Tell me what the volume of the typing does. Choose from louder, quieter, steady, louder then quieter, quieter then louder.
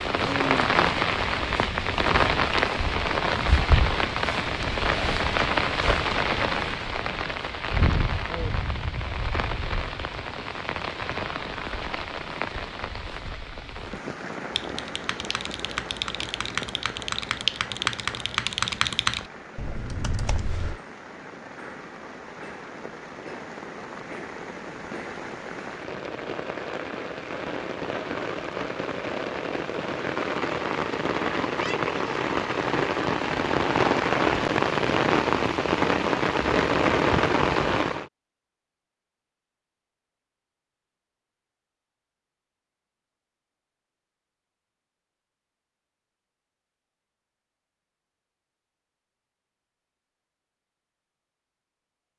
louder then quieter.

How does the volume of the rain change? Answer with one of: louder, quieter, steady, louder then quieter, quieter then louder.
quieter then louder.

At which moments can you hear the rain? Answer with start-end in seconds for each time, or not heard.
0.0-38.1.